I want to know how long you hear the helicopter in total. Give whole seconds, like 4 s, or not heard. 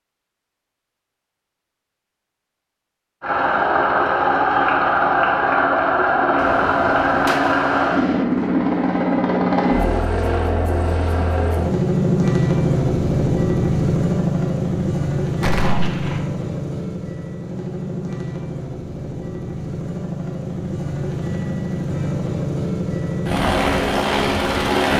22 s.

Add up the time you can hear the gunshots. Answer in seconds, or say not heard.
3 s.